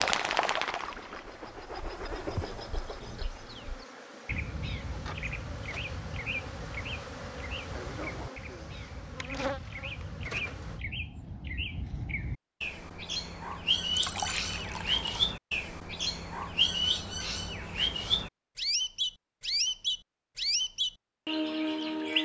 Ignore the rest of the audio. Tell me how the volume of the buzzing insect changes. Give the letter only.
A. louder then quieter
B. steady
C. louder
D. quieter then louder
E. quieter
C.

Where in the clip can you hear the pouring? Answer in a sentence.
The pouring can be heard from 13.9 to 15.3 s.